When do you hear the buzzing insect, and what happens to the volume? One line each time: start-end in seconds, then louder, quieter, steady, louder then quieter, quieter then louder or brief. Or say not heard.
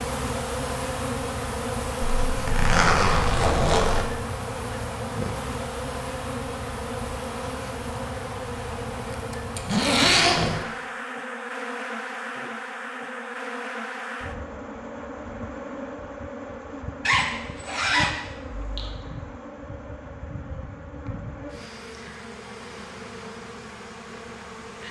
0.0-24.8 quieter.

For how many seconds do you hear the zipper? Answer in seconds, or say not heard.
5 s.